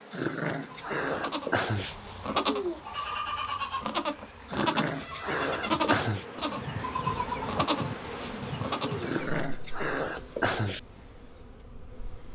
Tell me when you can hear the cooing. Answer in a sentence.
The cooing can't be heard in this clip.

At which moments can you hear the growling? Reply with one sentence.
You can hear the growling from 0.1 to 1.9 s, from 4.5 to 6.2 s and from 9.0 to 10.8 s.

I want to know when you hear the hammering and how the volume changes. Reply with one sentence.
The hammering can't be heard in this clip.